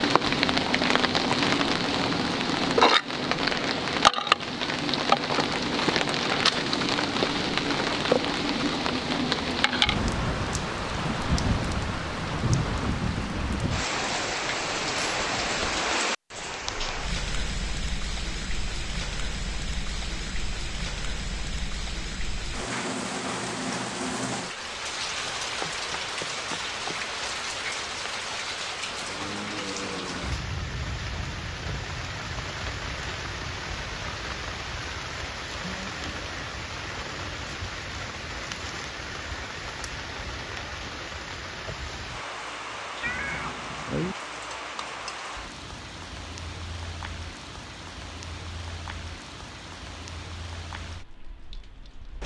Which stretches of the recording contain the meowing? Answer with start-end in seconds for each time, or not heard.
43.0-44.1.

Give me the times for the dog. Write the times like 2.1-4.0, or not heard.
not heard.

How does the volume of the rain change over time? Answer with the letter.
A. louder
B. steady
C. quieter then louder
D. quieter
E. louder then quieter
D.